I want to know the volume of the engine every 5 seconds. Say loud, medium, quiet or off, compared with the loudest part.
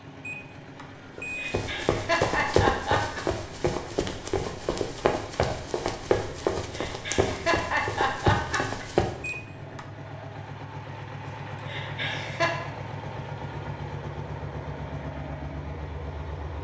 medium, medium, loud, loud.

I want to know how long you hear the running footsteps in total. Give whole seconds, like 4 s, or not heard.
8 s.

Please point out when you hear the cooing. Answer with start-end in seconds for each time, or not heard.
not heard.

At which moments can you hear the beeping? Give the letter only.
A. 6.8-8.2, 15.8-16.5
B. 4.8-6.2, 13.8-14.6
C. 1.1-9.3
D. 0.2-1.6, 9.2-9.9
D.